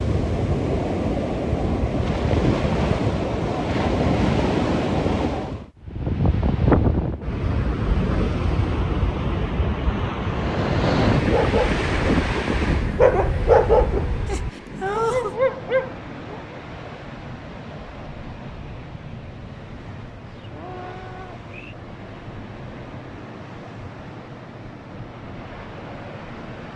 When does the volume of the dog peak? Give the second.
14 s.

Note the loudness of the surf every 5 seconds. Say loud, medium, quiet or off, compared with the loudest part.
loud, loud, loud, quiet, quiet, quiet.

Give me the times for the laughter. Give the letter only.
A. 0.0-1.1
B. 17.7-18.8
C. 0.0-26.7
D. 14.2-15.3
D.